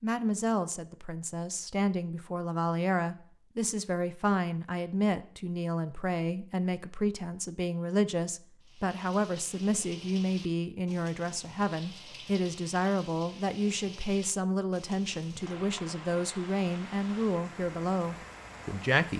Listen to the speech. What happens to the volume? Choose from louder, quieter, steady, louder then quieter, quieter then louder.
steady.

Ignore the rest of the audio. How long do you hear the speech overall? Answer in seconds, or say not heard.
19 s.